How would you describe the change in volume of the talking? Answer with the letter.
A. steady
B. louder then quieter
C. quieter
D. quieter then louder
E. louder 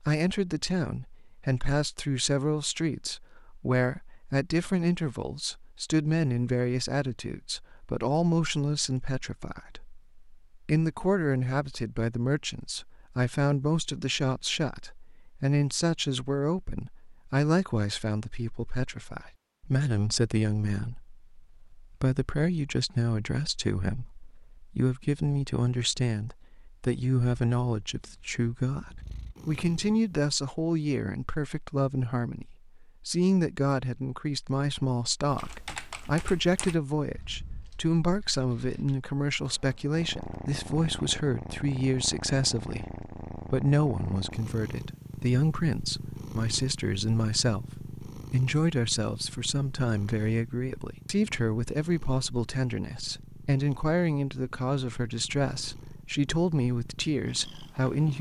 A.